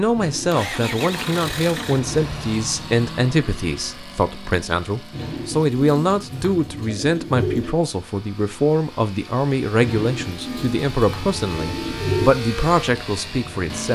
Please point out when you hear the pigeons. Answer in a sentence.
You can hear the pigeons from 0.1 to 2.2 s, from 5.1 to 7.8 s and from 9.8 to 12.3 s.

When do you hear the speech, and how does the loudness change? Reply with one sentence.
You can hear the speech from 0.0 to 13.8 s, at a steady volume.